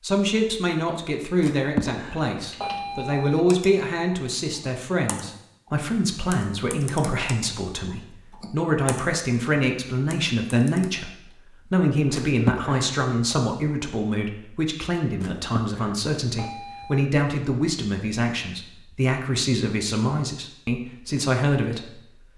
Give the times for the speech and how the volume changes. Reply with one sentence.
You can hear the speech from 0.0 to 22.0 s, at a steady volume.